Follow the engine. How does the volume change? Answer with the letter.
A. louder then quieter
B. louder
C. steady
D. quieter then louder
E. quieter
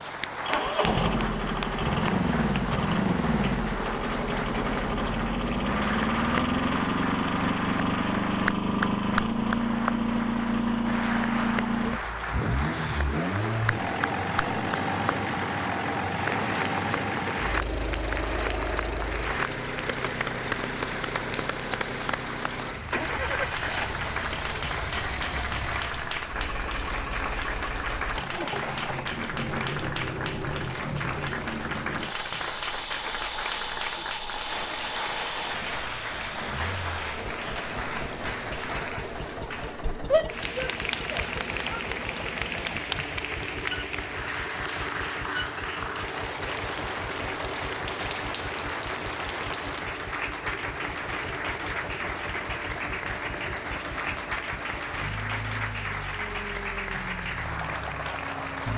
E.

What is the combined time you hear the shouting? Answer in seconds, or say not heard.
2 s.